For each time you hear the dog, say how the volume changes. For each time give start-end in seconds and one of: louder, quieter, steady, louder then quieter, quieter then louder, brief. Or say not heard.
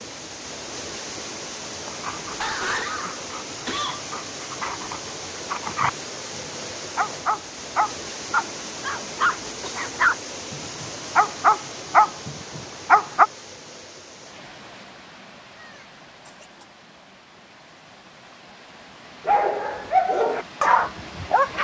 1.9-13.2 louder
19.2-21.5 brief.